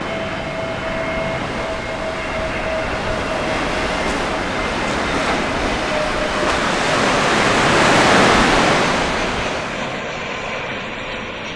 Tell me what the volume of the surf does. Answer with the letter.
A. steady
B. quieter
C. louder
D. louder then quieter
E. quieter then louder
C.